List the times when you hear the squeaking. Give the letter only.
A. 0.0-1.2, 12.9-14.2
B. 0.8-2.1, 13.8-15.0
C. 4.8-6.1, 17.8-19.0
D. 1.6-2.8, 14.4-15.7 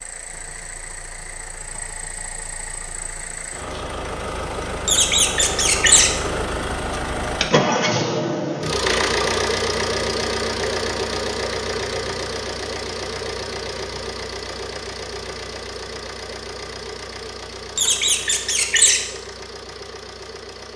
C.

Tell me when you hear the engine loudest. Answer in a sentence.
The loudest moment of the engine is at 8 seconds.